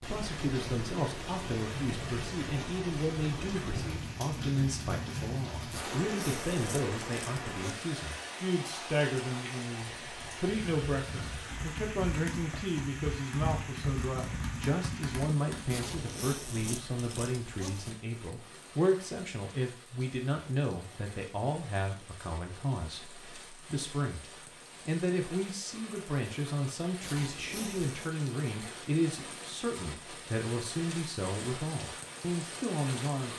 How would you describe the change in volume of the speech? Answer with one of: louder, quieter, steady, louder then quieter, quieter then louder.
steady.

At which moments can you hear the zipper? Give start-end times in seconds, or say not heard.
5.7-7.8, 15.7-17.9, 27.0-28.1.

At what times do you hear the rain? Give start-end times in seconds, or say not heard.
0.0-33.3.